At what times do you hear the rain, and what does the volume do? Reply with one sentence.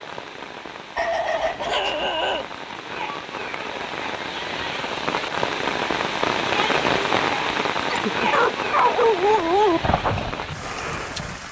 You can hear the rain from 0.0 to 11.4 s, getting louder then quieter.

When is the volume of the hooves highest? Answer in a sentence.
The volume of the hooves peaks at 10 seconds.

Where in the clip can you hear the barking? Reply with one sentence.
You can hear the barking from 0.9 to 2.5 s and from 7.8 to 9.8 s.